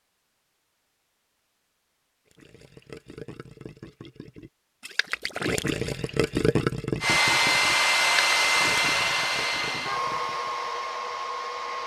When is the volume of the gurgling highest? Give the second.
7 s.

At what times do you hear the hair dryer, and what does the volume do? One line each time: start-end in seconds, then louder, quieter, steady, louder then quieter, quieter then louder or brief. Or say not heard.
7.0-11.8 quieter.